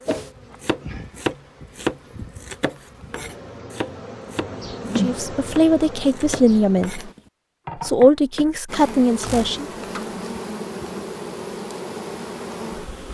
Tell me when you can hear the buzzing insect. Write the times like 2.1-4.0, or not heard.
0.0-7.2, 8.7-13.0.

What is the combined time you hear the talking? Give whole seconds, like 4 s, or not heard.
4 s.